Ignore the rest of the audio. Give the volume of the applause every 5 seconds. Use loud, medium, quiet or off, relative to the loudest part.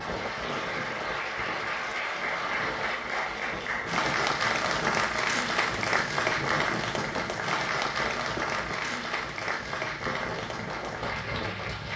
loud, loud, medium.